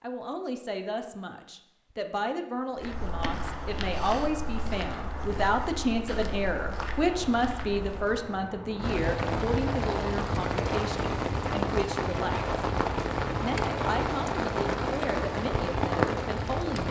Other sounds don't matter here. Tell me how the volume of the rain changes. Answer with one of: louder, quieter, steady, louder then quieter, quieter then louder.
louder.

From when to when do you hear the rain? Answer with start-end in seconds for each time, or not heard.
2.6-16.8.